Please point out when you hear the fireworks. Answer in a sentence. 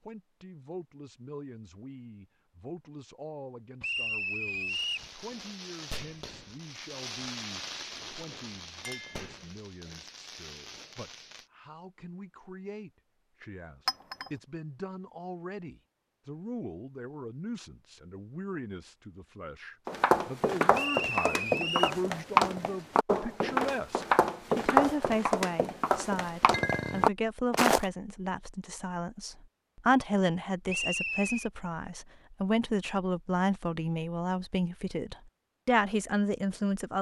The fireworks can be heard from 4.7 to 11.5 s.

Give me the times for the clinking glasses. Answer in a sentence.
The clinking glasses can be heard from 8.8 to 9.3 s, from 13.8 to 14.3 s and from 26.5 to 27.1 s.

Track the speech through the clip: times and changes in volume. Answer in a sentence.
You can hear the speech from 0.0 to 36.9 s, getting louder.